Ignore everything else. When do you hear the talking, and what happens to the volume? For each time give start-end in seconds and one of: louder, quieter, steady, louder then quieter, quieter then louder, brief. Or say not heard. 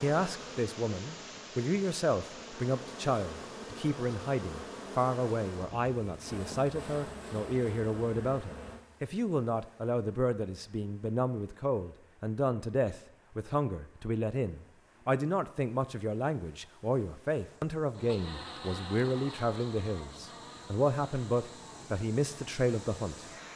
0.0-23.2 steady.